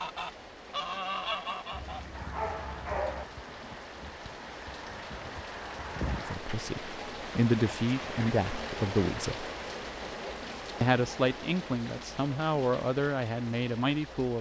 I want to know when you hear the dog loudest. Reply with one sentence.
The loudest moment of the dog is at 3 seconds.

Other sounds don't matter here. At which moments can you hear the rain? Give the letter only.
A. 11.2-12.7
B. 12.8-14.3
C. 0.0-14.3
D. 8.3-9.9
C.